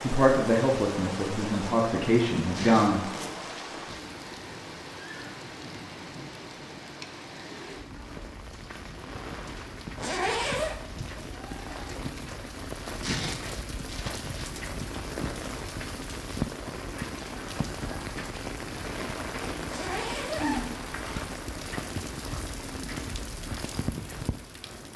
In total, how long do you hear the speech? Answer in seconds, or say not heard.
3 s.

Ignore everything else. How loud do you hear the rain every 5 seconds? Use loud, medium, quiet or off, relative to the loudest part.
loud, medium, loud, loud, loud.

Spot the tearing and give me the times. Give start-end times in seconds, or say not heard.
2.4-4.0, 12.8-14.5.